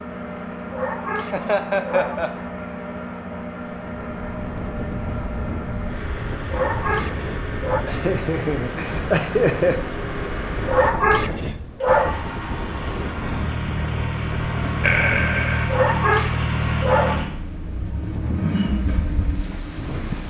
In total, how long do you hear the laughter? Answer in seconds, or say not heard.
4 s.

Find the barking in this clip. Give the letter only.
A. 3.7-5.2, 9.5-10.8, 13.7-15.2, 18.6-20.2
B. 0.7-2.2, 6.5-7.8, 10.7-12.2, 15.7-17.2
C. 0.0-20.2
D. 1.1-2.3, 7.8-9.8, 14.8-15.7
B.